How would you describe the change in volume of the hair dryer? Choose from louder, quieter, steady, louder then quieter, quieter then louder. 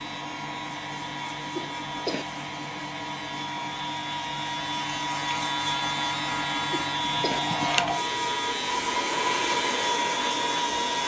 louder.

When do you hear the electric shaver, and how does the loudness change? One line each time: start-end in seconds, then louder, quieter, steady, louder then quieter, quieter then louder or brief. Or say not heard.
0.0-11.0 louder.